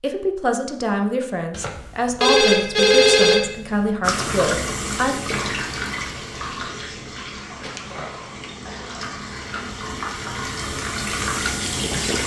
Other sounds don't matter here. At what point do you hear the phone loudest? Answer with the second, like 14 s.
3 s.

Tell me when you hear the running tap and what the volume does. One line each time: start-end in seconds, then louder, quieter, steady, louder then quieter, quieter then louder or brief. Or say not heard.
4.0-12.2 quieter then louder.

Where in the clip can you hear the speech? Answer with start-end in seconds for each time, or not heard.
0.0-5.2.